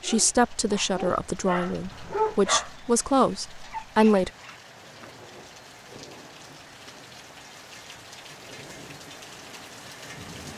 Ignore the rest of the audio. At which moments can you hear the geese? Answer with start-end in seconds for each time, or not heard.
not heard.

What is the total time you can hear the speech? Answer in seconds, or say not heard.
4 s.